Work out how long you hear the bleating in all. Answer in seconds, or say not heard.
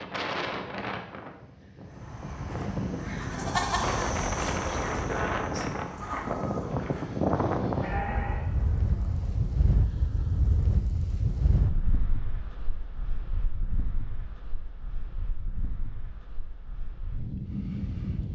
8 s.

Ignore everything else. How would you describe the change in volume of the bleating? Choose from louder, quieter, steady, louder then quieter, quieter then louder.
quieter then louder.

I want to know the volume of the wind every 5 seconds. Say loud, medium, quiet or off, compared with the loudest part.
loud, loud, medium, medium.